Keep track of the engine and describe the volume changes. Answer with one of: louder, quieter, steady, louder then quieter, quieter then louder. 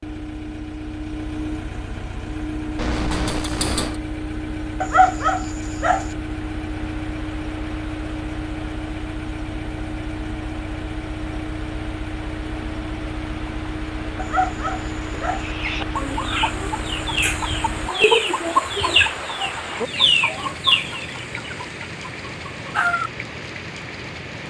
steady.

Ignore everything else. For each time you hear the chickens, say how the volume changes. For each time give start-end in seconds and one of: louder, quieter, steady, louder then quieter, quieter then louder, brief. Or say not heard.
15.3-23.1 louder then quieter.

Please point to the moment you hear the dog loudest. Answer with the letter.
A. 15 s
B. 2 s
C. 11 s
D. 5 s
D.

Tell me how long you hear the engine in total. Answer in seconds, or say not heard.
18 s.